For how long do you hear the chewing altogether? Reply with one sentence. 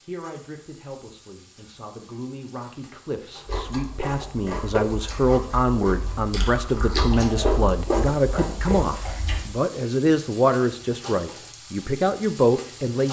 You can hear the chewing for 6 seconds altogether.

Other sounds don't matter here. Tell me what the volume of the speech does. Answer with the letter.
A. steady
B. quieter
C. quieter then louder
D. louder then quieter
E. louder
E.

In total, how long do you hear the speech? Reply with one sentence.
You can hear the speech for 13 seconds altogether.